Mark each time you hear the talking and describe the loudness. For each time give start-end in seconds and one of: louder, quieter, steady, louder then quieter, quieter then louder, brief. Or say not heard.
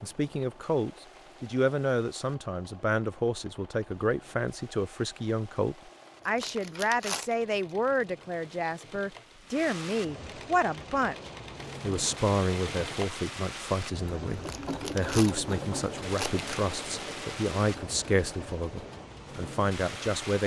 0.0-20.4 steady.